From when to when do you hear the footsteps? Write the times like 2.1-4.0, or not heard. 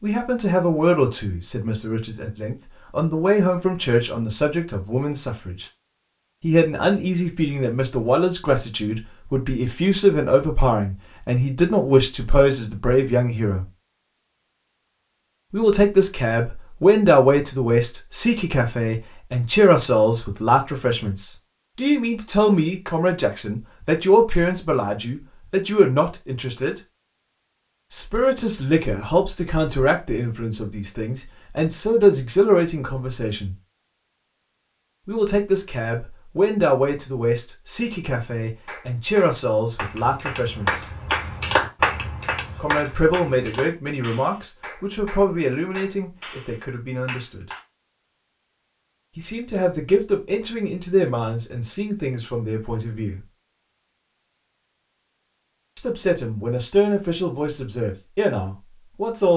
not heard.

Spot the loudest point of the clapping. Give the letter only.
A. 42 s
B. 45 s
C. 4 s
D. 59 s
A.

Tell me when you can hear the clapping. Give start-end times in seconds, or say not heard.
38.1-47.6.